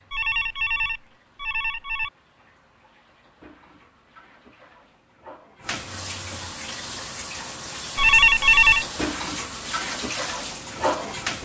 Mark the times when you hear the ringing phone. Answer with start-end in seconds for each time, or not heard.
0.1-2.1, 8.0-8.8.